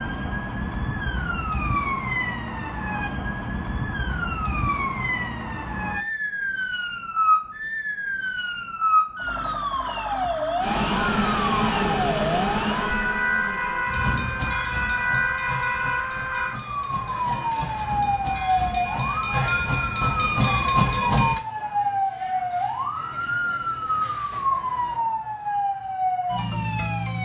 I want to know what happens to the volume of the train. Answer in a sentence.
The loudness of the train goes down, then up.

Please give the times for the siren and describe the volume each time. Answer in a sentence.
The siren can be heard from 0.0 to 27.2 s, at a steady volume.